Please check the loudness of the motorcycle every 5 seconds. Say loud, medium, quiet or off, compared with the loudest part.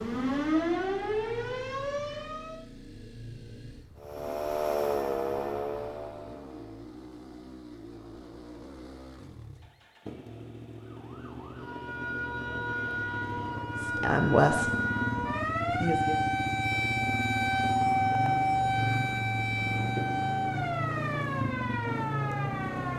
quiet, quiet, medium, loud, loud.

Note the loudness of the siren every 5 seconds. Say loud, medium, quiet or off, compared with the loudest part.
loud, medium, medium, loud, medium.